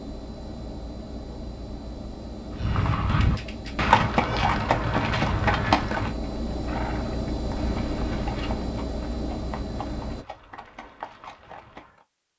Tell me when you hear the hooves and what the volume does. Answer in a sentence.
The hooves can be heard from 2.5 to 12.1 s, getting quieter.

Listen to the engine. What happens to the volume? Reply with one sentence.
The loudness of the engine goes up.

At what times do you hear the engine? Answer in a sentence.
The engine can be heard from 0.0 to 10.2 s.